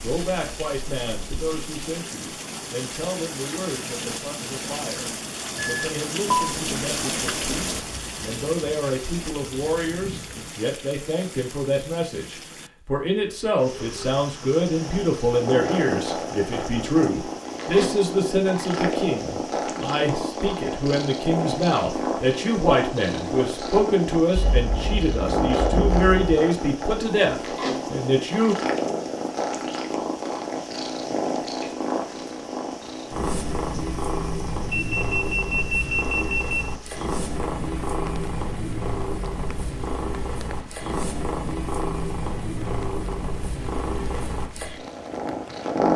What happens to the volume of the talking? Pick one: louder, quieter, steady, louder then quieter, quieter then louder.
louder.